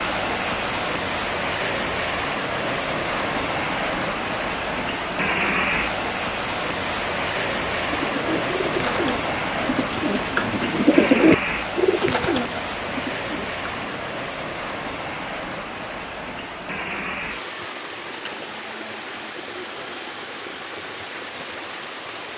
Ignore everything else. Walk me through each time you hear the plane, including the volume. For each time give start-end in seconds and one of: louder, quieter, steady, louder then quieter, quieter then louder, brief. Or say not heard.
not heard.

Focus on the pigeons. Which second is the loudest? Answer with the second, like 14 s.
11 s.